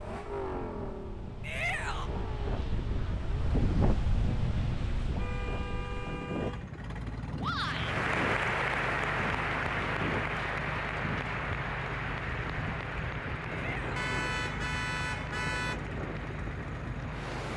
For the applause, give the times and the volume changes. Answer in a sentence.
The applause can be heard from 7.6 to 17.3 s, getting quieter.